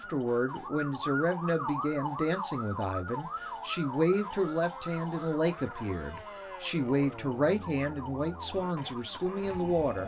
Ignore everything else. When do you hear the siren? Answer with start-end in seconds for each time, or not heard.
0.0-10.0.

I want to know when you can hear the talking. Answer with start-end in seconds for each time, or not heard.
0.1-10.0.